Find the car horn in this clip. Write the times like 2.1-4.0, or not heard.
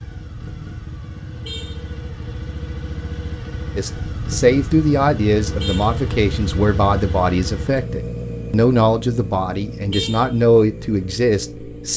1.4-1.9, 5.6-6.0, 9.9-10.3.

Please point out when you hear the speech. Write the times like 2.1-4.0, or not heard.
3.8-11.9.